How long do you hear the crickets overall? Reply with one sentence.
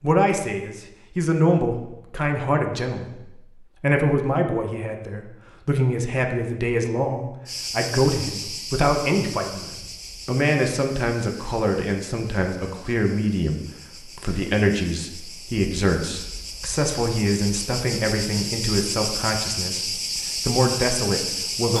You can hear the crickets for 14 seconds altogether.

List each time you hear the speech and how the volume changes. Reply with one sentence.
The speech can be heard from 0.0 to 21.7 s, at a steady volume.